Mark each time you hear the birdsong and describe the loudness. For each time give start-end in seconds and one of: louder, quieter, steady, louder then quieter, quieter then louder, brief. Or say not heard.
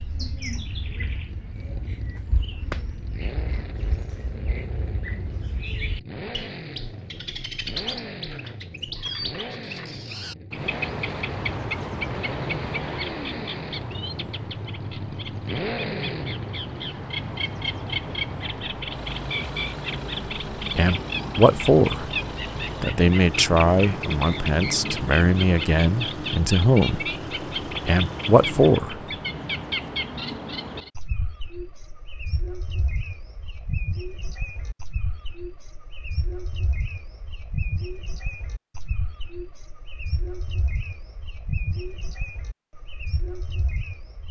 0.0-44.2 louder then quieter.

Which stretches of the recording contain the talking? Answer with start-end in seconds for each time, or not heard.
20.8-22.1, 22.8-27.1, 27.9-29.0.